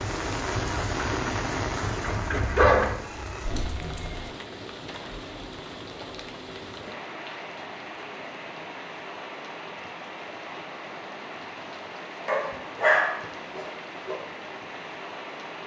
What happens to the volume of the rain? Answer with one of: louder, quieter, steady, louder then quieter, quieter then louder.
quieter.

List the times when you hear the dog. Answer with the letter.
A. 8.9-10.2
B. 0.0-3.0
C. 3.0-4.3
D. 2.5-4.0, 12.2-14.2
D.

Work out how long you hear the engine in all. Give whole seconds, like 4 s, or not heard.
3 s.